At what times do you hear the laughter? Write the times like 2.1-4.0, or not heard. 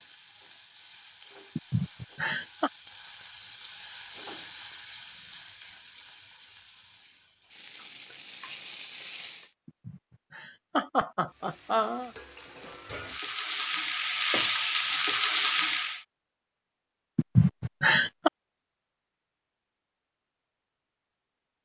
1.6-2.7, 9.7-12.1, 17.1-18.3.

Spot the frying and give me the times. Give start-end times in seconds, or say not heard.
0.0-9.6, 11.2-16.1.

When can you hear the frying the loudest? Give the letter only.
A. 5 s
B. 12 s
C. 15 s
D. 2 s
C.